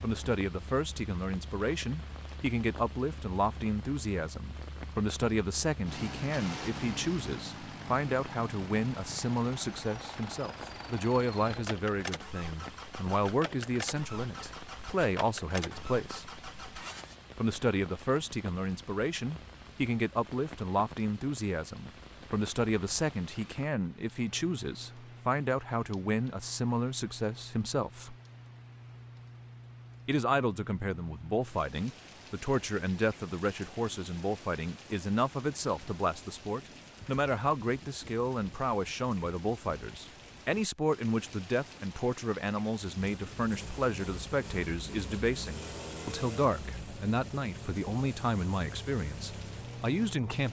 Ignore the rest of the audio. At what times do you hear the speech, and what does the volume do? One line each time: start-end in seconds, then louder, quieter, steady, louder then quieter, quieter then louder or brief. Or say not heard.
0.0-16.3 steady
17.4-28.1 steady
30.1-50.4 steady.